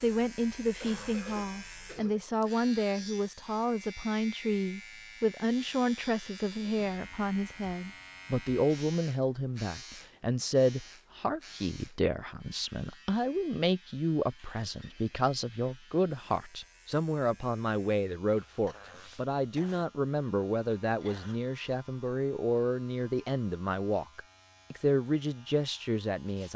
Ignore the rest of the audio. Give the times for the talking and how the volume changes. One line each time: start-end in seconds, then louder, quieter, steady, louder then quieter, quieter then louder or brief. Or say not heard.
0.0-26.5 steady.